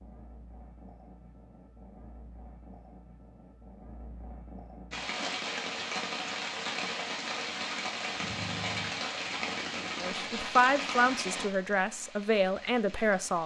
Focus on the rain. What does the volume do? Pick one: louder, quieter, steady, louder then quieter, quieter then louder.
quieter.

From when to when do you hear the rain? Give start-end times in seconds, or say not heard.
4.9-13.4.